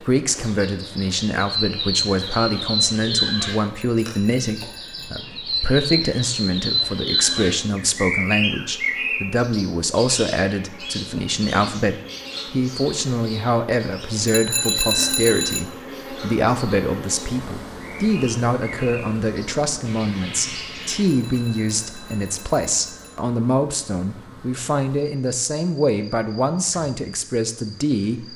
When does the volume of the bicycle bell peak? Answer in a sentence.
The volume of the bicycle bell peaks at 15 seconds.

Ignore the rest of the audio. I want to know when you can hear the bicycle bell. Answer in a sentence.
The bicycle bell can be heard from 3.8 to 5.2 s, from 14.2 to 15.7 s and from 21.1 to 23.2 s.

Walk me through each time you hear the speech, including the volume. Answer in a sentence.
You can hear the speech from 0.0 to 28.3 s, at a steady volume.